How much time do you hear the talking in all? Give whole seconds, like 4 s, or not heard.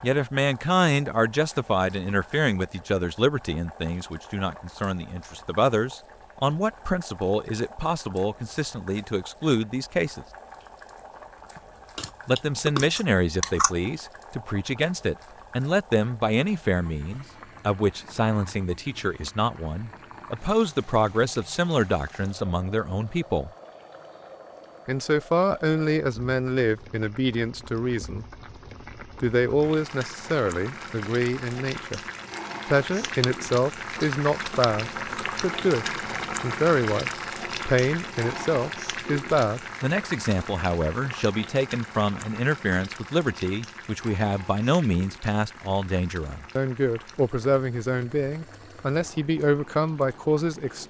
46 s.